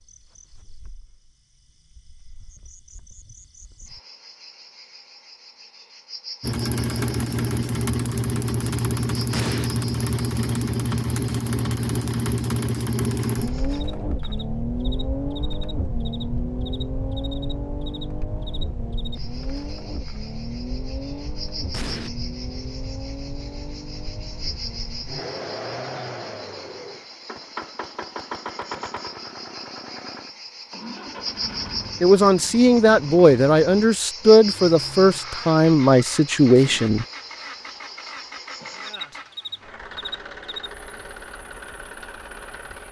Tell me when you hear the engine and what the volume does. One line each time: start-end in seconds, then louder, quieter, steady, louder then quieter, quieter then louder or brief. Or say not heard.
6.4-42.8 quieter.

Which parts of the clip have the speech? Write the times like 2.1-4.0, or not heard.
32.0-37.0.